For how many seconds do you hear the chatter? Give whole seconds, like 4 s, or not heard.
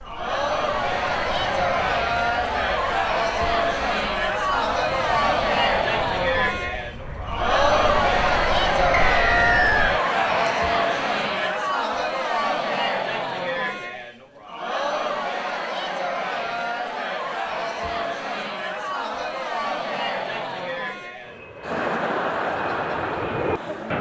24 s.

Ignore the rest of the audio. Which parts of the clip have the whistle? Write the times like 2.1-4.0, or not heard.
8.9-9.9.